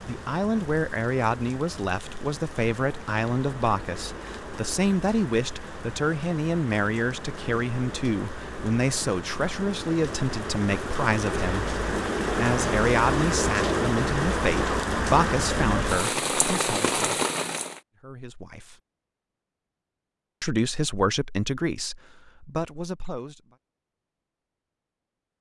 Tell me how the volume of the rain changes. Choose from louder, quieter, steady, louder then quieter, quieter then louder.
louder.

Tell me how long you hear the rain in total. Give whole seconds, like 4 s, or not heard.
18 s.